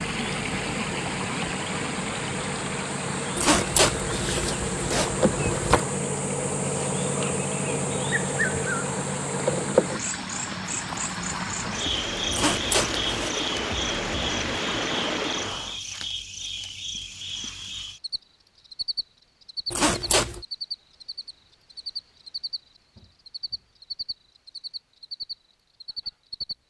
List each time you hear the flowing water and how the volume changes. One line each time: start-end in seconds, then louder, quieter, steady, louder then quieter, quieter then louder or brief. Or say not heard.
0.0-15.8 quieter then louder.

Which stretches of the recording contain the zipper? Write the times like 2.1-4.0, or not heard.
3.4-5.8, 12.3-13.3, 19.7-20.4.